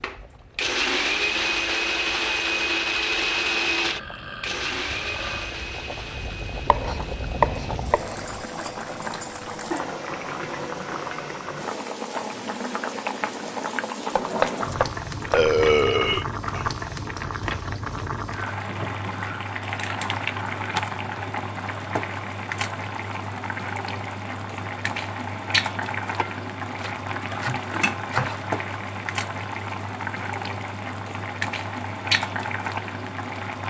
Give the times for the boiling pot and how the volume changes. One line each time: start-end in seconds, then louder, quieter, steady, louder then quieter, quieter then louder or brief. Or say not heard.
0.0-33.6 louder.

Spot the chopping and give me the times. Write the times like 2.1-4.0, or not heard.
6.7-8.4, 14.2-15.4, 26.8-28.5.